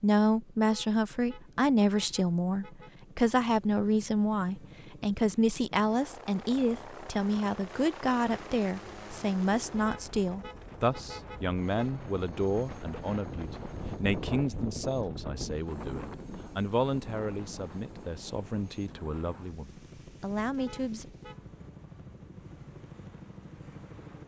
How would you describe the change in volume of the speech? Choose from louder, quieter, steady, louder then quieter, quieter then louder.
quieter.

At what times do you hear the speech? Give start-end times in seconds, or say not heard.
0.0-21.1.